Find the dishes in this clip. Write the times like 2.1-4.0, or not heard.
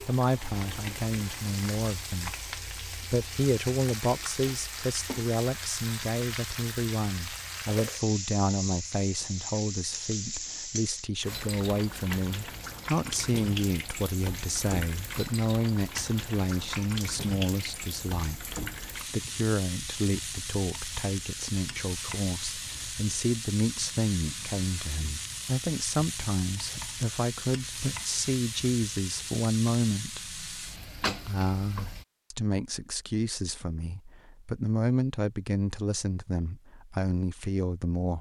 not heard.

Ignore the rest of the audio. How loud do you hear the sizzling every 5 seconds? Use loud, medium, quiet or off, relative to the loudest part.
loud, loud, loud, loud, loud, loud, loud, off.